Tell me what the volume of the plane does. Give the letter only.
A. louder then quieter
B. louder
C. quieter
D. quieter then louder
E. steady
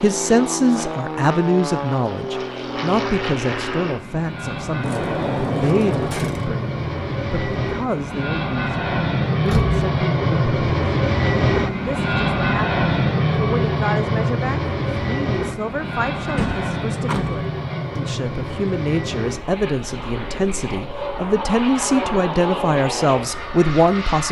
A.